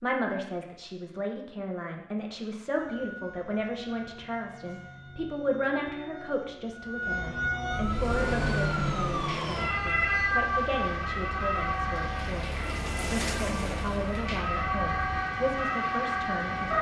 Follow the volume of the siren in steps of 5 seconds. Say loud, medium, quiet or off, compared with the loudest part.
quiet, loud, loud, loud.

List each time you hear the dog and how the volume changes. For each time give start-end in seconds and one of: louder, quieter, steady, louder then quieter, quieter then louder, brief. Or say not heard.
not heard.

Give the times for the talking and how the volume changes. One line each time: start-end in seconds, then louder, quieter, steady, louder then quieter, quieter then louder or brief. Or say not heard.
0.0-16.7 steady.